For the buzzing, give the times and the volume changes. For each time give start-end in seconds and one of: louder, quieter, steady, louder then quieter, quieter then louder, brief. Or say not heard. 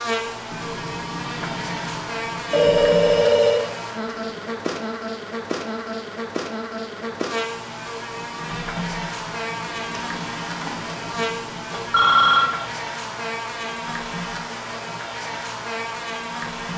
0.0-16.7 steady.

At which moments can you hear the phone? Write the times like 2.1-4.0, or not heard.
2.5-3.6, 11.7-12.6.